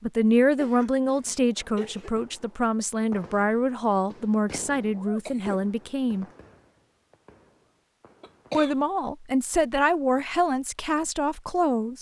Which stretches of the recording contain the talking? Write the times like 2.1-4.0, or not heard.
0.0-6.2, 8.5-11.9.